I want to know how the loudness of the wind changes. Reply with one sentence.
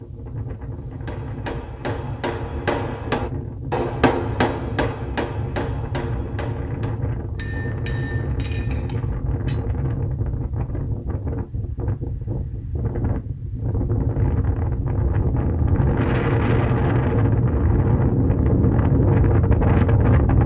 The volume of the wind goes up.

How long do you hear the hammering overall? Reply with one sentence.
You can hear the hammering for 9 seconds altogether.